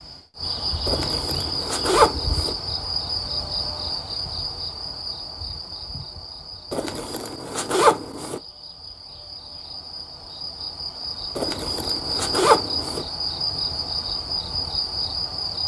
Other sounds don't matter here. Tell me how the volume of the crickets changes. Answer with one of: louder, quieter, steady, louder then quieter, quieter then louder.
quieter then louder.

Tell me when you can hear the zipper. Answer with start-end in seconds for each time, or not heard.
0.8-2.5, 6.7-8.4, 11.3-13.1.